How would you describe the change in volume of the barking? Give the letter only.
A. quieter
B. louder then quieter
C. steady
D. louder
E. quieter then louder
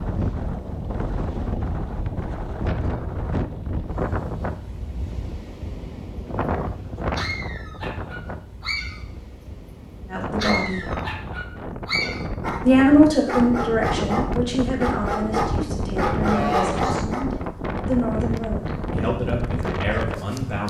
D.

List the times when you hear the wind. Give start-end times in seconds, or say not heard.
0.0-20.6.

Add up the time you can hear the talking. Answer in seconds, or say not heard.
9 s.